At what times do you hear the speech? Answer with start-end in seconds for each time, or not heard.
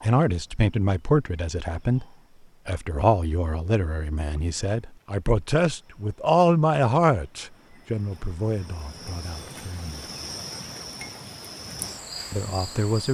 0.0-2.0, 2.6-10.1, 12.3-13.0.